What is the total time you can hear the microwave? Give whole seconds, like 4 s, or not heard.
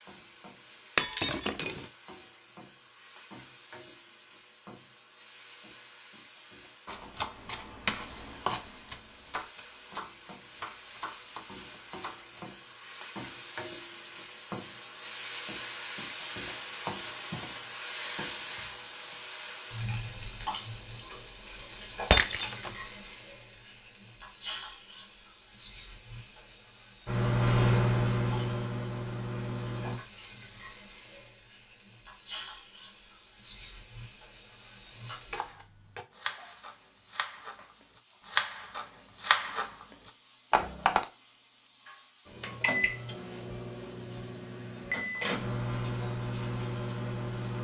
8 s.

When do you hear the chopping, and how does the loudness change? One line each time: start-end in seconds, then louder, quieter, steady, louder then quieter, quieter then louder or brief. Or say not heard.
6.8-12.5 quieter
35.3-41.0 louder.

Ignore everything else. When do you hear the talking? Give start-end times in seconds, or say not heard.
not heard.